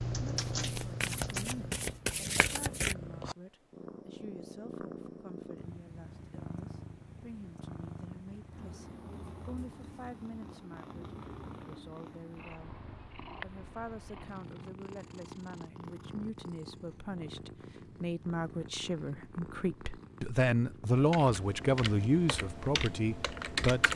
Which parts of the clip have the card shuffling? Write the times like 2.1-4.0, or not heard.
0.3-3.0.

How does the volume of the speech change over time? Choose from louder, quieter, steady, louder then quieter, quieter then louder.
louder.